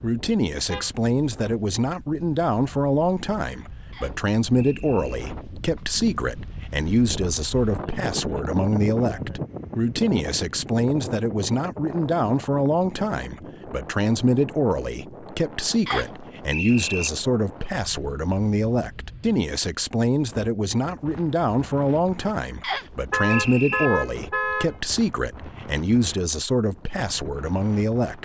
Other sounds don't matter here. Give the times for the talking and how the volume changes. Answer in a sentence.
The talking can be heard from 0.0 to 28.1 s, at a steady volume.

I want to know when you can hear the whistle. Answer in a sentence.
You can hear the whistle from 3.9 to 5.2 s, from 15.8 to 17.1 s and from 22.6 to 23.9 s.